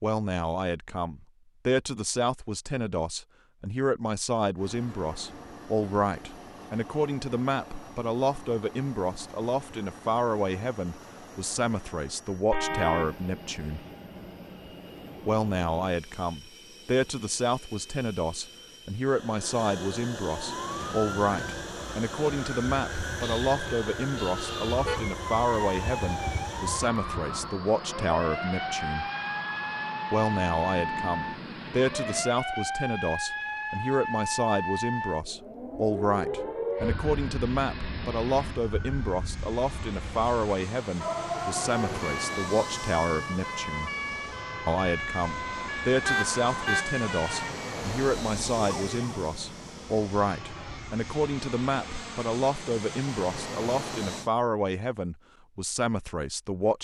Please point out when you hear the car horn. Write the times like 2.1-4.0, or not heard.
12.5-13.2, 23.2-25.1, 46.0-46.9.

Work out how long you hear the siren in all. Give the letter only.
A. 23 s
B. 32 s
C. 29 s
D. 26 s
C.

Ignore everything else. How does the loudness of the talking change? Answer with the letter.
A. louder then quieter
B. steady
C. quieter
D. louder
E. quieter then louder
B.